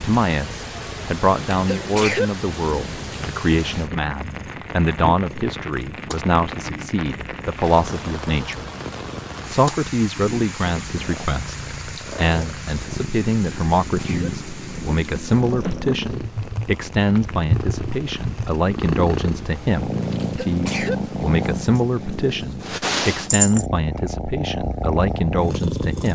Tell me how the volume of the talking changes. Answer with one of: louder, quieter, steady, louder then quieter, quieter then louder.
steady.